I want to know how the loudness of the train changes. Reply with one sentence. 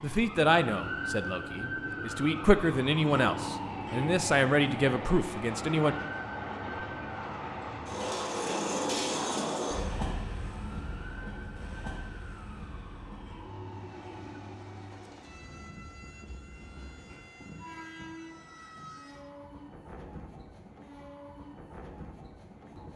The loudness of the train goes up, then down.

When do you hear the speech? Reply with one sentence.
You can hear the speech from 0.0 to 6.0 s.